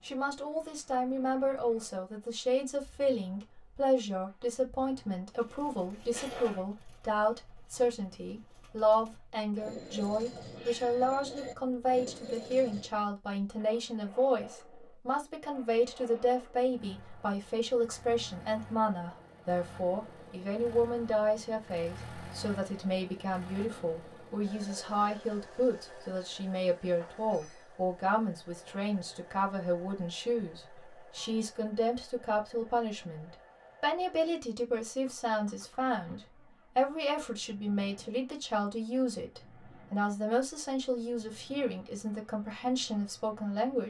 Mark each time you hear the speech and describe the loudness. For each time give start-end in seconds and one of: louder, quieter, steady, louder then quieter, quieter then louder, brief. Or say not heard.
0.0-43.8 steady.